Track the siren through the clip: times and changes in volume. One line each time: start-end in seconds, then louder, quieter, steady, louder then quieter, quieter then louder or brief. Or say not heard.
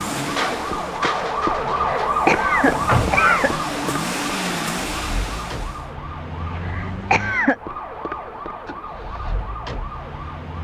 0.0-10.6 quieter.